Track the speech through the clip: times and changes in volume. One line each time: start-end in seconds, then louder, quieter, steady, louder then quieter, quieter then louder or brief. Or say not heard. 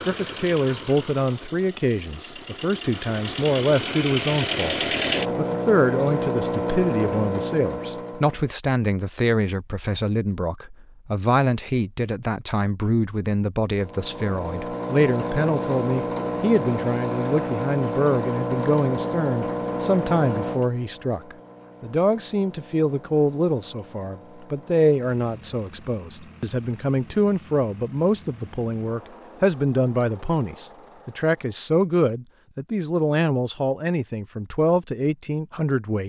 0.1-4.8 quieter then louder
5.3-36.0 steady.